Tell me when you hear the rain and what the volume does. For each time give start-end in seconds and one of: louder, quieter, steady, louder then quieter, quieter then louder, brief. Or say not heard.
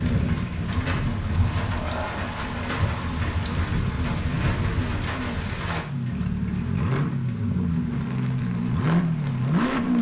0.0-9.9 quieter.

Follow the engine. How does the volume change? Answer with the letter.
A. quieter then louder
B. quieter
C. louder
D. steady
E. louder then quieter
C.